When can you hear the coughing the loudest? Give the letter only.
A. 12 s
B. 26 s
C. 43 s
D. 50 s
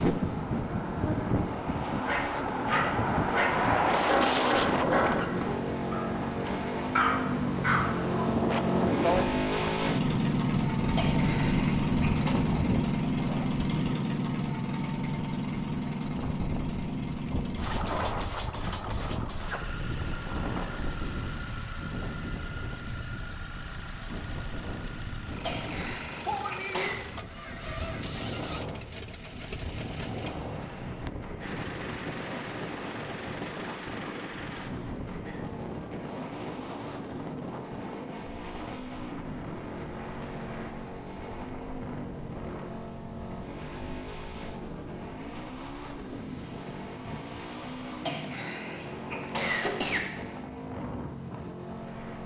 D.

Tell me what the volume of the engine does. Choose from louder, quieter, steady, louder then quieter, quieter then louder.
quieter.